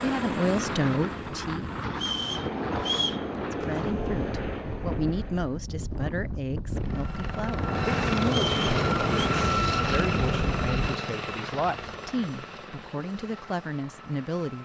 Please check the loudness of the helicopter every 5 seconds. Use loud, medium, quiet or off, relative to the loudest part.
medium, loud, medium.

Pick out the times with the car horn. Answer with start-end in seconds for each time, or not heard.
not heard.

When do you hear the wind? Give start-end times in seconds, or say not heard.
0.0-10.9.